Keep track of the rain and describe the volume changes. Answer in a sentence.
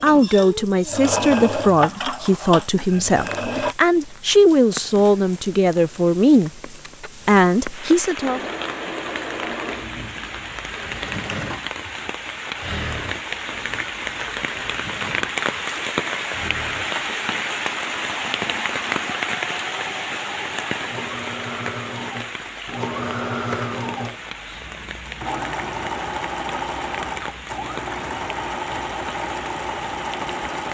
The volume of the rain goes up, then down.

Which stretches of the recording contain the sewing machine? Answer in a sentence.
The sewing machine can be heard from 0.0 to 3.8 s and from 8.2 to 30.6 s.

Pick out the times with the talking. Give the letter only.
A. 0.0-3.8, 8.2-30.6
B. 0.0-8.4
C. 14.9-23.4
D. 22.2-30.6
B.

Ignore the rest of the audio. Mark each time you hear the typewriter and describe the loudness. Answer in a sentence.
You can't hear the typewriter here.